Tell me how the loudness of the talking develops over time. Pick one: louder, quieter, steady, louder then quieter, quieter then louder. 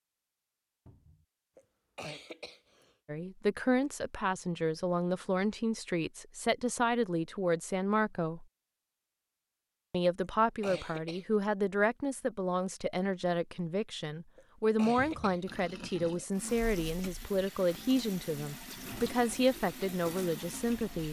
steady.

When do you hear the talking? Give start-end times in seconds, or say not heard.
3.0-8.4, 9.9-21.0.